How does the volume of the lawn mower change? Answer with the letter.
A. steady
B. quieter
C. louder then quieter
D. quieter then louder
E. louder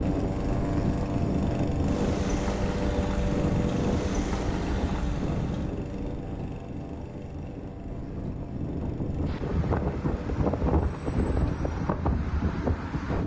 B.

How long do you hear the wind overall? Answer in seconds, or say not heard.
13 s.